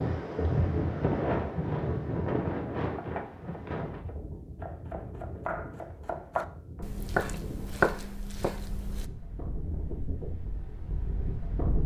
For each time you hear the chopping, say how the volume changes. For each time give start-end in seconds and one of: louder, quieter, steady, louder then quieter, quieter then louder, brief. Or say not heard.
3.0-9.1 louder.